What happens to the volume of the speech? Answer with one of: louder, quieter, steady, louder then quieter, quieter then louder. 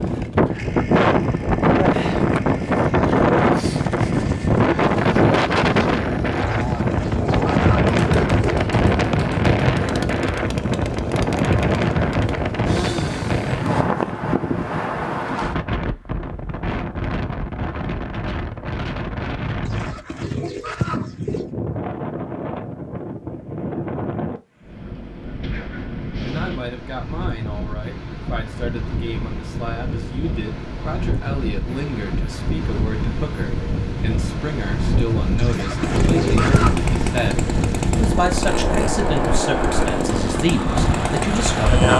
louder.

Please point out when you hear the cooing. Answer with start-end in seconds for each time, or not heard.
6.5-8.7, 19.6-21.5, 35.4-36.8.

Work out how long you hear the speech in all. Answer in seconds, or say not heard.
16 s.